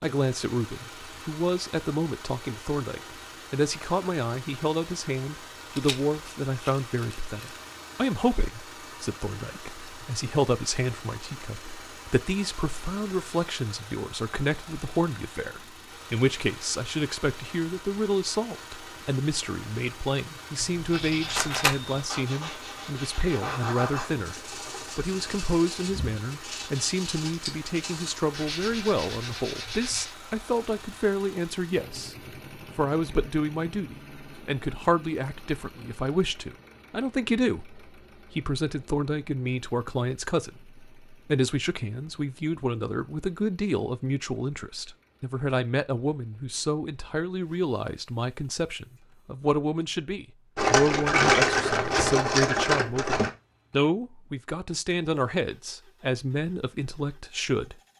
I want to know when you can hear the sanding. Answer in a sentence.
You can hear the sanding from 20.9 to 30.1 s.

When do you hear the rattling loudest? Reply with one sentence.
The volume of the rattling peaks at 51 seconds.